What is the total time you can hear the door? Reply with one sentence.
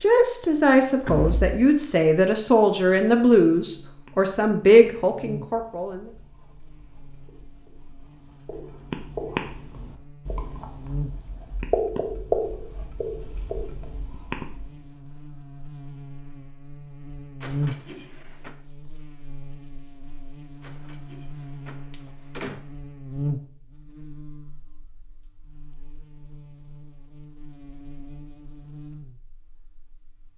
You can hear the door for 4 seconds altogether.